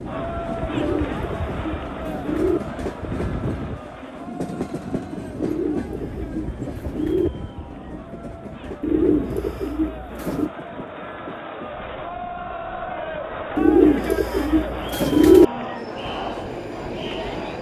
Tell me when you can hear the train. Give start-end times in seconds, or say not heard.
0.0-17.5.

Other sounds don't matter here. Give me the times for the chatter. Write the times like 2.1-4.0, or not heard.
0.0-17.5.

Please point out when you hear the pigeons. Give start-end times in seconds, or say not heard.
0.7-2.6, 5.4-7.3, 8.8-10.5, 13.6-15.4.